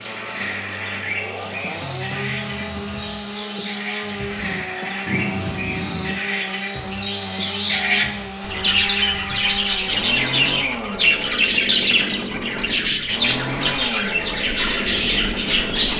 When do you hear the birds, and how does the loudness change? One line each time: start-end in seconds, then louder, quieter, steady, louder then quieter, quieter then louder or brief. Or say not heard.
0.0-15.9 louder.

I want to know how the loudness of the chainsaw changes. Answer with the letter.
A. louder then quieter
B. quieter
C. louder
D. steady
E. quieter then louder
D.